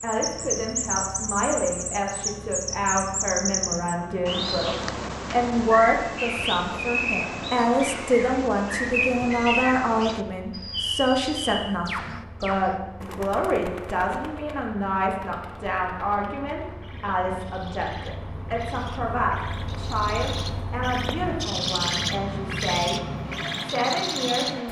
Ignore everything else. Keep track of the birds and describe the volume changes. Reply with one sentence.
The volume of the birds goes down, then up.